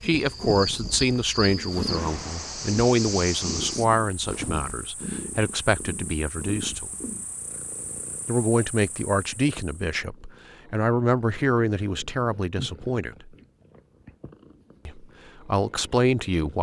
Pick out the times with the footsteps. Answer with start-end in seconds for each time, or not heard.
not heard.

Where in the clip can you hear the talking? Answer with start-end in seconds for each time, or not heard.
0.0-6.9, 8.2-13.3, 14.8-16.5.